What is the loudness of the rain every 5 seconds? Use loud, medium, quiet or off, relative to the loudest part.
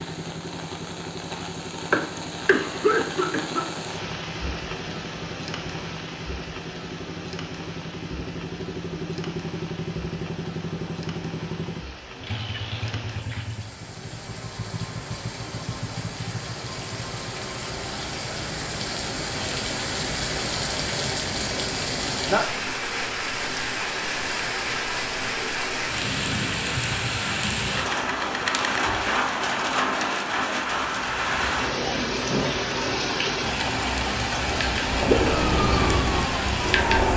medium, quiet, quiet, medium, loud, loud, loud, loud.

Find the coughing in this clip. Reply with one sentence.
You can hear the coughing from 1.9 to 3.8 s and from 27.8 to 28.9 s.